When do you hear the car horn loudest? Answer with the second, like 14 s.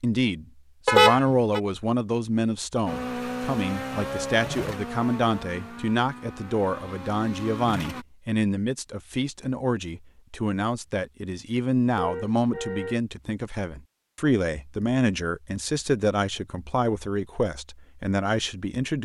1 s.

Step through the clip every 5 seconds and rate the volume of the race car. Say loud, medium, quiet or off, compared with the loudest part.
loud, medium, off, off.